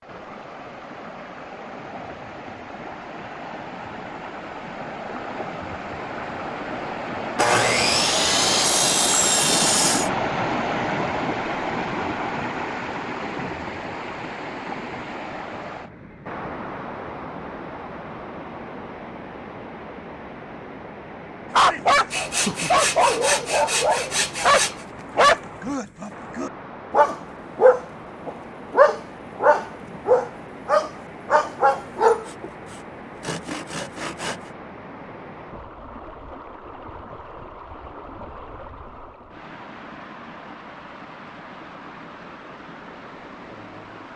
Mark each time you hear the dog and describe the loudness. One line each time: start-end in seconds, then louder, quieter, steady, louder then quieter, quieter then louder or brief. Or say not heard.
21.5-32.5 steady.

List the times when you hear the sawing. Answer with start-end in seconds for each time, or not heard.
7.3-10.1, 22.1-24.9, 32.2-34.5.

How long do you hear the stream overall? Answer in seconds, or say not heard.
44 s.